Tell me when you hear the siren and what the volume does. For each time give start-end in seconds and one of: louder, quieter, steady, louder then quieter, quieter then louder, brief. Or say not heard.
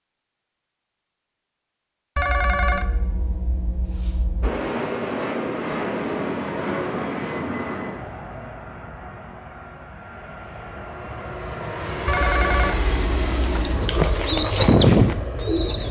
not heard.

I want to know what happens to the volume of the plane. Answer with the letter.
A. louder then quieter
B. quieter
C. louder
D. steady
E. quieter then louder
E.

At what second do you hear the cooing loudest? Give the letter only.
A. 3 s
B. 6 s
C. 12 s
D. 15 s
D.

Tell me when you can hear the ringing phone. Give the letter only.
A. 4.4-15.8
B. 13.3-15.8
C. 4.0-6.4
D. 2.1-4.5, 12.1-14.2
D.